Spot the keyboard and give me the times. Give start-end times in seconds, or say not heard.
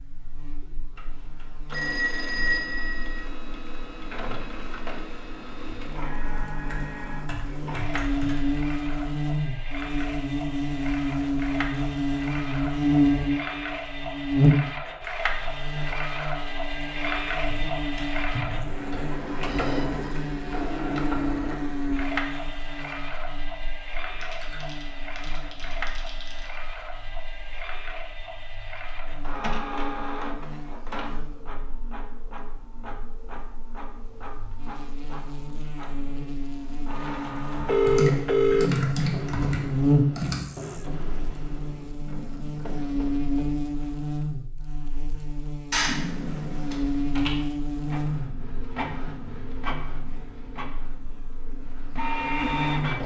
6.7-8.4, 17.4-19.0, 24.2-26.5, 37.9-40.5, 45.7-47.4.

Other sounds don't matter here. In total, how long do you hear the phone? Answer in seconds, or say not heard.
4 s.